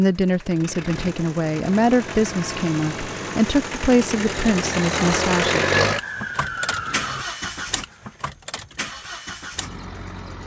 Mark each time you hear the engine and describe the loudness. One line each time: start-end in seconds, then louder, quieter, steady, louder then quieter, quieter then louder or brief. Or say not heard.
0.0-10.4 louder then quieter.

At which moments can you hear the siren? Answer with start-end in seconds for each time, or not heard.
5.8-7.2.